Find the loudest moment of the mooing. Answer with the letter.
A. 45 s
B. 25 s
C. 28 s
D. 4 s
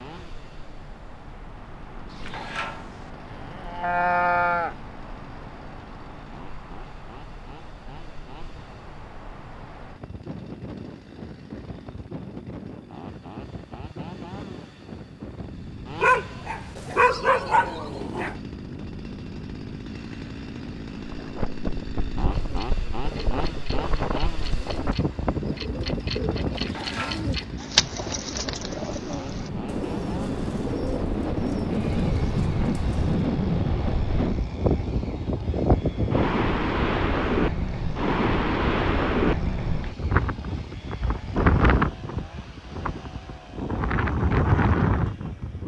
D.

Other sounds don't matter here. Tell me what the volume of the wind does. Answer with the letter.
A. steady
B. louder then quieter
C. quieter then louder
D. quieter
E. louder
E.